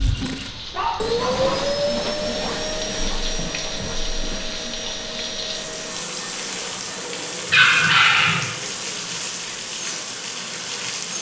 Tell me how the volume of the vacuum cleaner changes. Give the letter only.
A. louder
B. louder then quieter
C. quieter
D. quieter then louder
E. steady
C.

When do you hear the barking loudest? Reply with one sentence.
The loudest moment of the barking is at 8 seconds.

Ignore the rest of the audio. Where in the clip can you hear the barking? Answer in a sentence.
You can hear the barking from 0.5 to 1.7 s and from 7.5 to 8.4 s.